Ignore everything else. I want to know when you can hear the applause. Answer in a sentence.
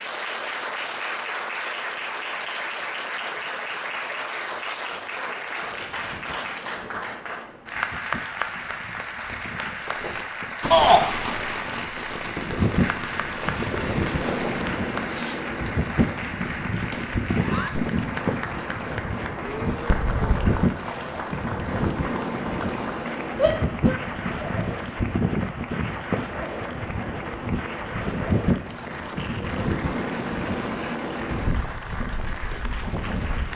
The applause can be heard from 0.0 to 33.5 s.